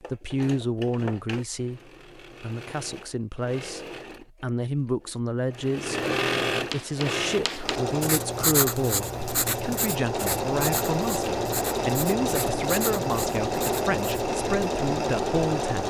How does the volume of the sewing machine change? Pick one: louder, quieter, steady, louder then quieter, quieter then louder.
louder.